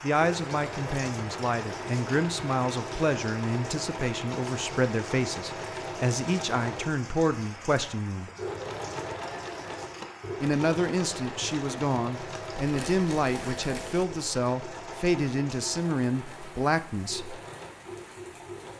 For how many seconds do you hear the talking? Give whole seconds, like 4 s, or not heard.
15 s.